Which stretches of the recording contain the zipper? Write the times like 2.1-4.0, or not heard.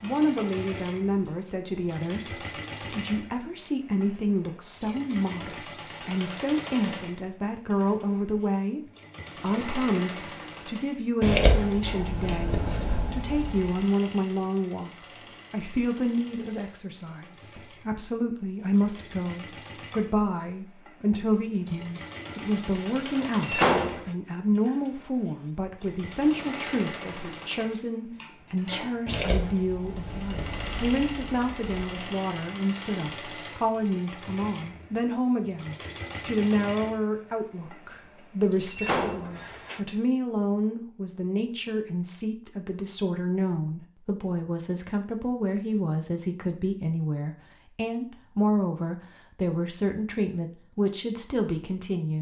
not heard.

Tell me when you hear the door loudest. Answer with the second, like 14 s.
24 s.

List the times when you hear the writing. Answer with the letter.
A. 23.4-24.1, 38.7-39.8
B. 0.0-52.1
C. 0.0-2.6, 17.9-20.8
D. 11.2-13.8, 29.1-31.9
D.